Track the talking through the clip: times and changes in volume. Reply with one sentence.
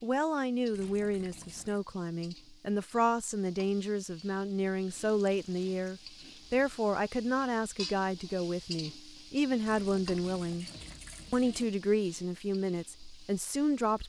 The talking can be heard from 0.0 to 10.7 s, at a steady volume; and briefly from 11.3 to 14.0 s.